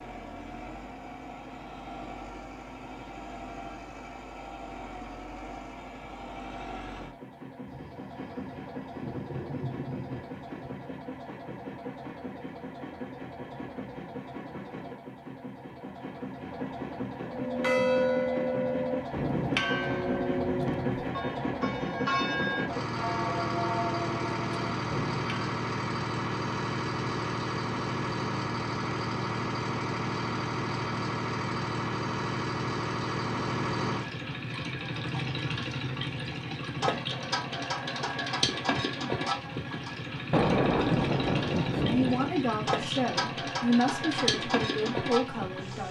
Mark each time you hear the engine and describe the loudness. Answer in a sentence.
You can hear the engine from 0.0 to 45.8 s, getting louder.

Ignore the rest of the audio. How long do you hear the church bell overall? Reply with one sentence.
The church bell can be heard for 8 seconds in total.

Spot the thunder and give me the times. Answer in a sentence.
The thunder can be heard from 7.7 to 10.8 s and from 40.3 to 42.3 s.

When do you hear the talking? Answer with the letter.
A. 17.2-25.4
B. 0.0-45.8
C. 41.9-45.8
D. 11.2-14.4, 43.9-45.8
C.